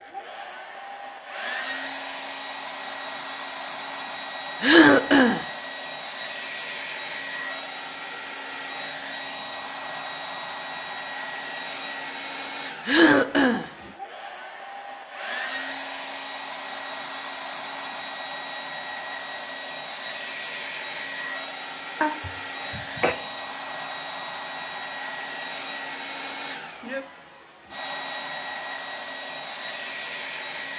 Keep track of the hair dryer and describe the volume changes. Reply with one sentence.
The volume of the hair dryer stays about the same.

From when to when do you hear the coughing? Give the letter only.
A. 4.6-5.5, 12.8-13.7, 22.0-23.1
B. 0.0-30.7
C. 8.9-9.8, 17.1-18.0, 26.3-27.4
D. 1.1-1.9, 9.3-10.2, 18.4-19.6
A.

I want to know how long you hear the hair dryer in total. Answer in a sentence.
You can hear the hair dryer for 31 seconds altogether.